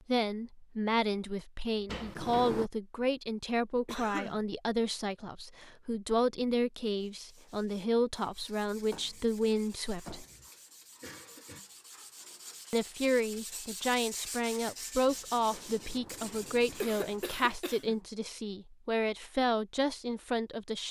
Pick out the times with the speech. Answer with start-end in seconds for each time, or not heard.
0.1-10.2, 12.7-20.8.